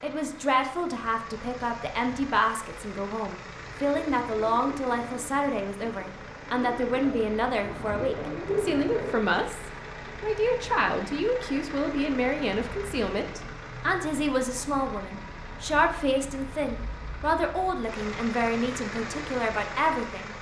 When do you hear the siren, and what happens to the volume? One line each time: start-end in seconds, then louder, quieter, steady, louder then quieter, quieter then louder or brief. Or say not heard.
not heard.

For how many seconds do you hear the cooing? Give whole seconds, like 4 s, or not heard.
6 s.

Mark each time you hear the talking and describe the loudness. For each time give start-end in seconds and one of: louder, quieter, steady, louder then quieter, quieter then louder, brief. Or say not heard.
0.0-20.3 steady.